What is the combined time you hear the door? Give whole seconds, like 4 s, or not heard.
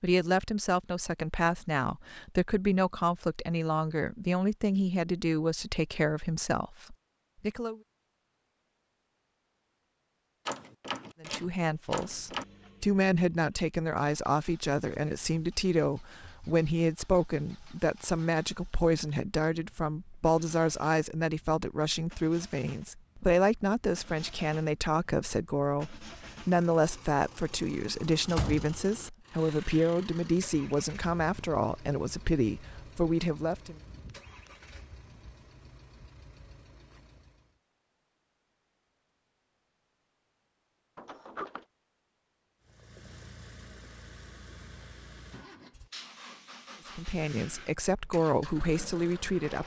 3 s.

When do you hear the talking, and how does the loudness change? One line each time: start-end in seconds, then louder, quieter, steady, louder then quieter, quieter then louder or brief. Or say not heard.
0.0-7.8 steady
11.2-33.8 steady
47.0-49.6 brief.